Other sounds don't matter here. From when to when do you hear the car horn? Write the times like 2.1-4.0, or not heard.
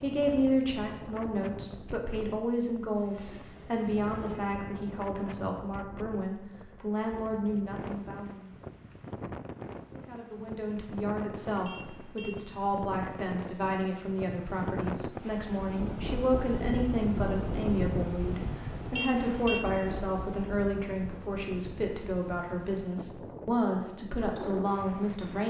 2.9-4.5, 11.6-12.4, 18.9-19.7.